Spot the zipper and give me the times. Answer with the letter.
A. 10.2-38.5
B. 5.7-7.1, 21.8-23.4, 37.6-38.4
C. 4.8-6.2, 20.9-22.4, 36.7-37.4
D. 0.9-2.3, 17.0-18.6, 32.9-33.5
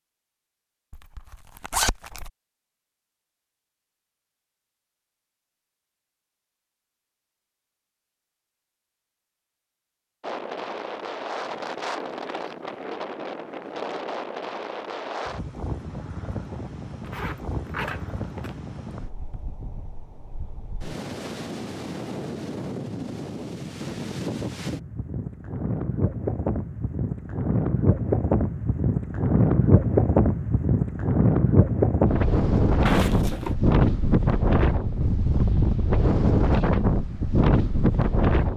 D.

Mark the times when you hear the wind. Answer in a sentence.
The wind can be heard from 10.2 to 38.5 s.